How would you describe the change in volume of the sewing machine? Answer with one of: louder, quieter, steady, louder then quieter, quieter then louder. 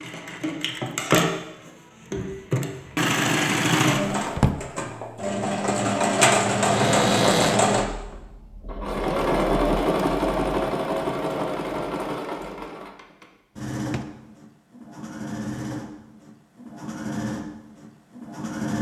quieter.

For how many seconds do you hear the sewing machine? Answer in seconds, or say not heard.
19 s.